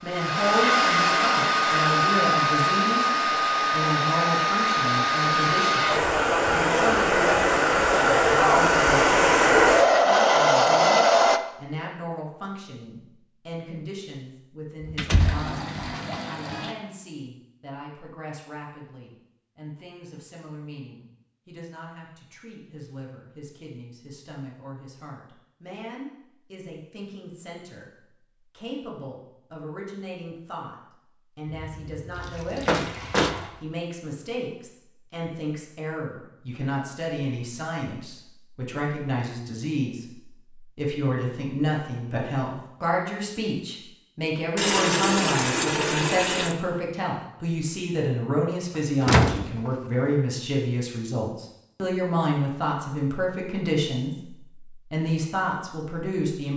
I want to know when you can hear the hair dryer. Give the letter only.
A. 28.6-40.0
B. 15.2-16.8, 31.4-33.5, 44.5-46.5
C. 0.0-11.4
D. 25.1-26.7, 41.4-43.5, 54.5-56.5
C.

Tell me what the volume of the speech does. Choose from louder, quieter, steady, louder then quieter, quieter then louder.
quieter then louder.